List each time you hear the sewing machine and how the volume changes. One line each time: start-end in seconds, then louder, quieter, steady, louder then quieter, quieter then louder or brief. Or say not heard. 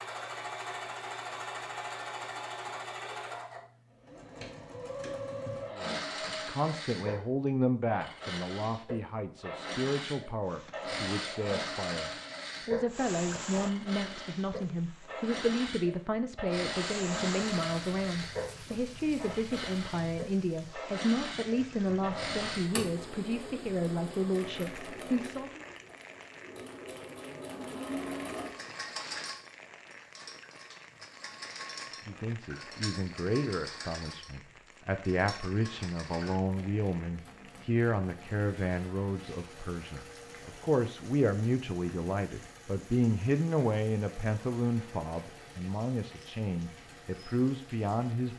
0.0-48.3 quieter.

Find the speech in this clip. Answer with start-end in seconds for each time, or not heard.
5.7-25.6, 32.0-48.3.